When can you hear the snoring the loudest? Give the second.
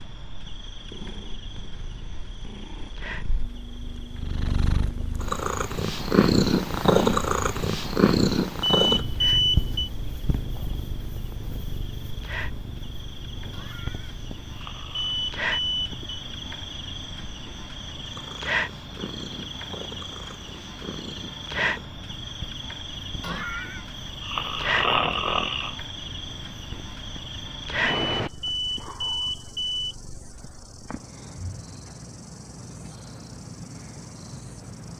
25 s.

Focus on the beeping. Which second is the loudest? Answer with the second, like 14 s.
9 s.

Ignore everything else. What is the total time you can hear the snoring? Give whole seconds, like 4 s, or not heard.
4 s.